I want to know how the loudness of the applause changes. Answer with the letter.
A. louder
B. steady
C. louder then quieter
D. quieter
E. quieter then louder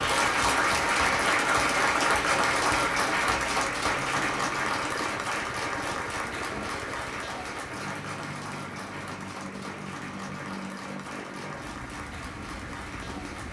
D.